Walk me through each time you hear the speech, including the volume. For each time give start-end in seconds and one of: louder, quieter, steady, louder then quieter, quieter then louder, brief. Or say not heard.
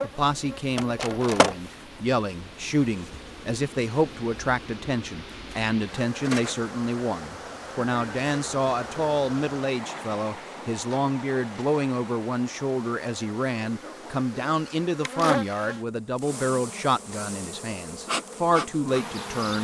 0.0-19.5 steady.